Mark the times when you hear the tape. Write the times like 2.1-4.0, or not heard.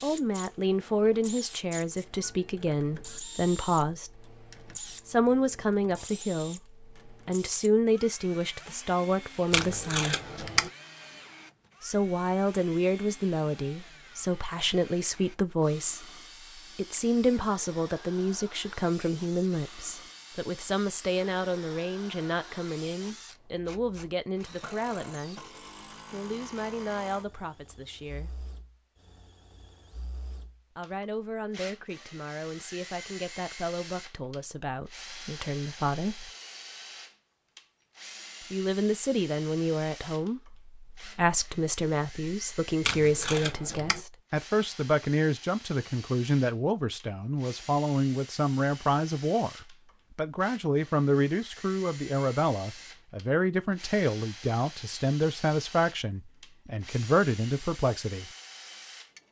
9.5-10.7, 42.8-44.0.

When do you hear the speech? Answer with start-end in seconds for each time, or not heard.
0.0-10.2, 11.8-25.4, 26.1-28.4, 30.8-36.3, 38.5-58.3.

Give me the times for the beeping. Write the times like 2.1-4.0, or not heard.
not heard.